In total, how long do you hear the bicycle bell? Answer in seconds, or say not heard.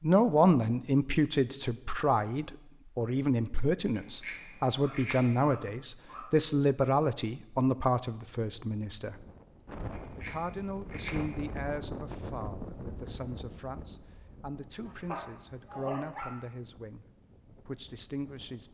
3 s.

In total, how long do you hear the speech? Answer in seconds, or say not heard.
17 s.